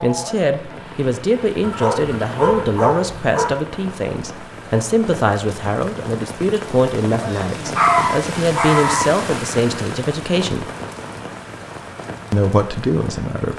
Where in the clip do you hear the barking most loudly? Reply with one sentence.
The loudest moment of the barking is at 8 seconds.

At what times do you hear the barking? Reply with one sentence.
The barking can be heard from 1.6 to 3.5 s and from 7.8 to 9.1 s.